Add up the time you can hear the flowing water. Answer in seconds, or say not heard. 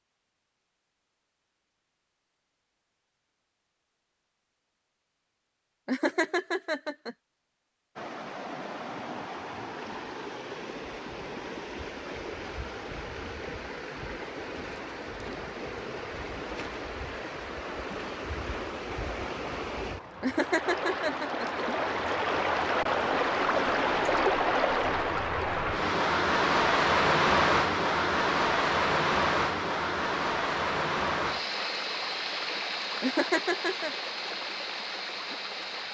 28 s.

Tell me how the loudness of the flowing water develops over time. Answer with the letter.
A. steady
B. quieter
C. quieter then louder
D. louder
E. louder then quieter
E.